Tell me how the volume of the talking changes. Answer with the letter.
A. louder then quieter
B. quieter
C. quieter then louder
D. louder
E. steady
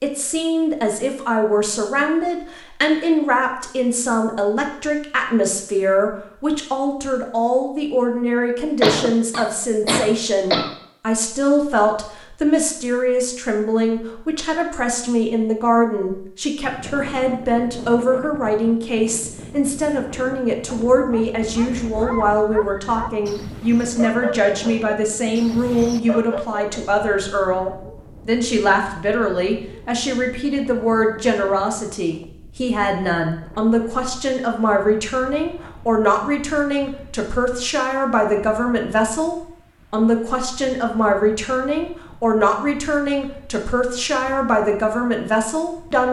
E.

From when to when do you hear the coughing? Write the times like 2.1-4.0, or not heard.
8.8-10.7.